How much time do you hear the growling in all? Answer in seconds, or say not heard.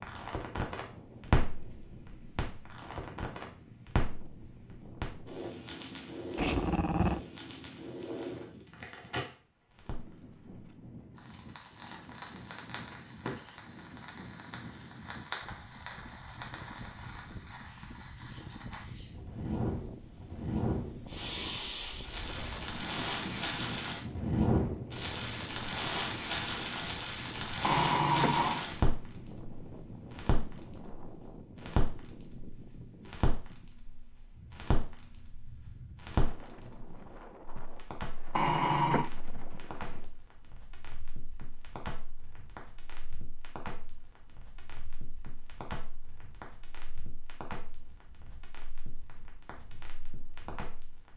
3 s.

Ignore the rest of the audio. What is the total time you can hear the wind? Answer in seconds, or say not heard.
51 s.